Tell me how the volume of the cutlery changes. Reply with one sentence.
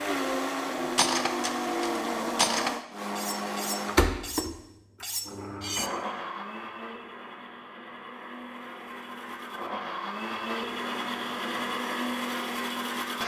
The volume of the cutlery goes up, then down.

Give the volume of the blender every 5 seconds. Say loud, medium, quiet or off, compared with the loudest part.
loud, medium, loud.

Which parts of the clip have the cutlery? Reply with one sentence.
The cutlery can be heard from 0.9 to 5.9 s.